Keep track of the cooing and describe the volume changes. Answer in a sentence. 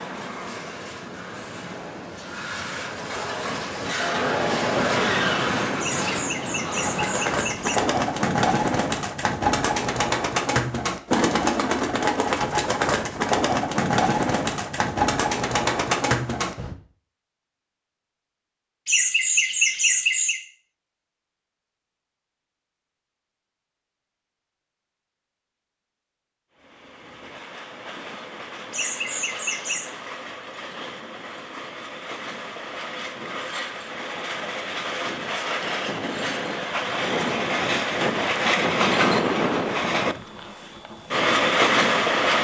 The volume of the cooing stays about the same.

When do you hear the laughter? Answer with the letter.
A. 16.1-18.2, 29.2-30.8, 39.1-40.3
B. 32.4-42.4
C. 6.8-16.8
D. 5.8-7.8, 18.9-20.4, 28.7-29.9
D.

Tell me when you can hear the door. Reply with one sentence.
The door can't be heard in this clip.